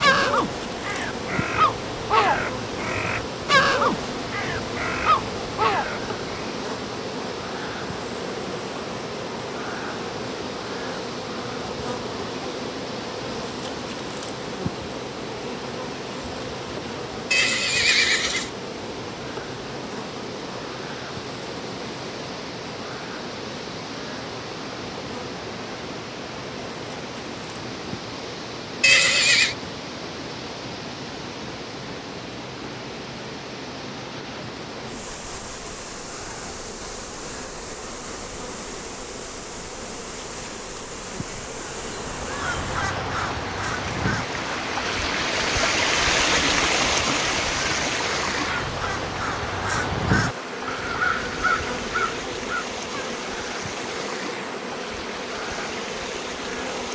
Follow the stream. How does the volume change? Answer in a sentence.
The volume of the stream goes up.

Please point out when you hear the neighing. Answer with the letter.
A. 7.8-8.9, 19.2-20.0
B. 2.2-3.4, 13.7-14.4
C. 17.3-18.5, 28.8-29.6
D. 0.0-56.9
C.